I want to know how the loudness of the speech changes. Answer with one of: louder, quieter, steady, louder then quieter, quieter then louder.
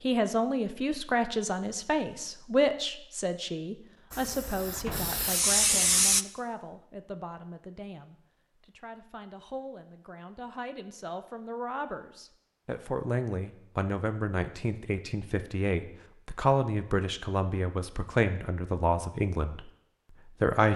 quieter then louder.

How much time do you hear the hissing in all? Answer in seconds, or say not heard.
2 s.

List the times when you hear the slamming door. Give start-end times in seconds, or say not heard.
4.8-5.2.